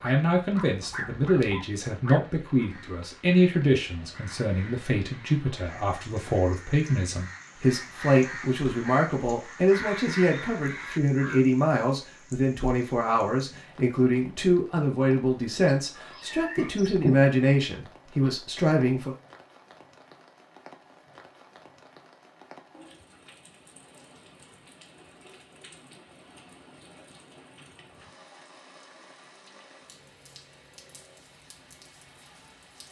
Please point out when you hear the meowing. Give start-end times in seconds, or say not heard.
15.7-17.2.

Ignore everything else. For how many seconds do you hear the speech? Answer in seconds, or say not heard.
19 s.